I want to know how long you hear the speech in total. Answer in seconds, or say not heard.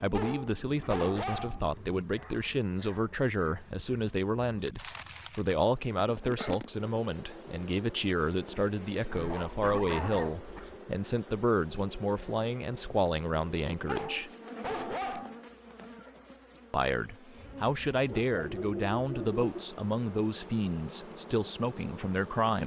20 s.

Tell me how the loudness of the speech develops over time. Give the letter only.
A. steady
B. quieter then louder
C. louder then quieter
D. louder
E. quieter
A.